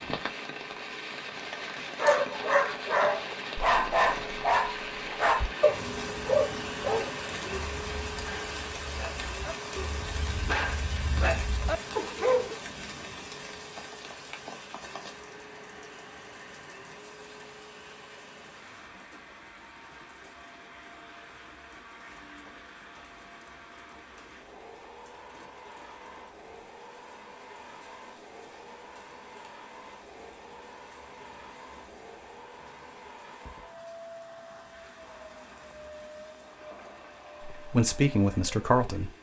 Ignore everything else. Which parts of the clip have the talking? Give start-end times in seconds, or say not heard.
37.5-39.1.